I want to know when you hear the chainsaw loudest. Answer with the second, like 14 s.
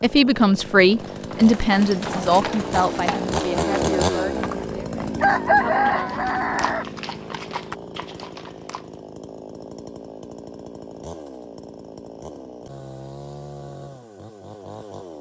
4 s.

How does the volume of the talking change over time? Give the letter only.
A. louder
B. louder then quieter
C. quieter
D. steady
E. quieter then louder
C.